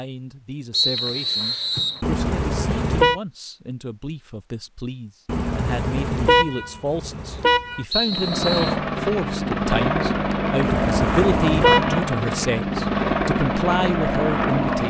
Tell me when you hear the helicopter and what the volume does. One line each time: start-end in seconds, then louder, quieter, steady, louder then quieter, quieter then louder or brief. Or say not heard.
8.1-14.8 steady.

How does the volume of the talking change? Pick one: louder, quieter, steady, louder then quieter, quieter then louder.
louder.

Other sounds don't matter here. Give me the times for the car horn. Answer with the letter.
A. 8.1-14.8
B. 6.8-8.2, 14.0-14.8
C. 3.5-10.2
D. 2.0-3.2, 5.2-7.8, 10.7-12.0
D.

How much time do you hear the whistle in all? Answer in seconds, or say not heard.
2 s.